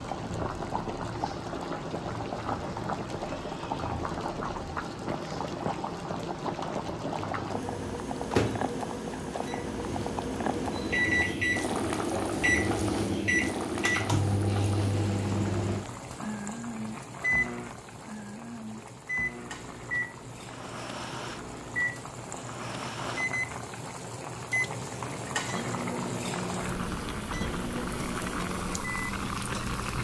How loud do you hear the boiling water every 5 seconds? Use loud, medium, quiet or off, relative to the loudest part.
loud, loud, loud, medium, medium, loud.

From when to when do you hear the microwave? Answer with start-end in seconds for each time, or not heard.
7.4-29.9.